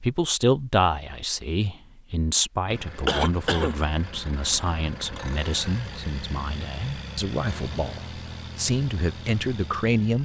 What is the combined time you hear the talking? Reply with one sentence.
The talking can be heard for 10 seconds in total.